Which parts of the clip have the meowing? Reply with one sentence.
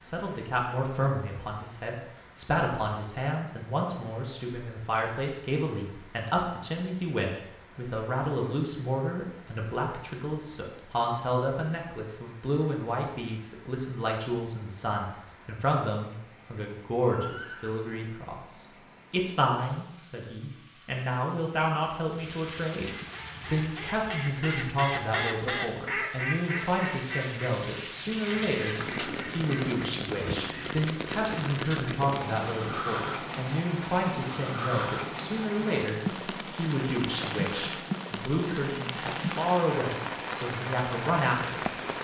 The meowing can't be heard in this clip.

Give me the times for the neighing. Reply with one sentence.
You can hear the neighing from 17.1 to 17.8 s.